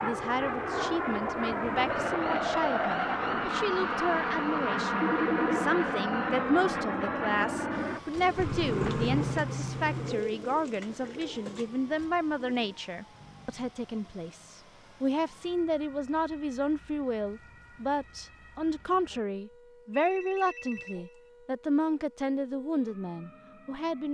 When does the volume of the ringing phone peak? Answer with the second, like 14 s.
5 s.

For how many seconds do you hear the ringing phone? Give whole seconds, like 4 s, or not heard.
3 s.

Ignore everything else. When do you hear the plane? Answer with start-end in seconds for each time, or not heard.
0.0-10.2.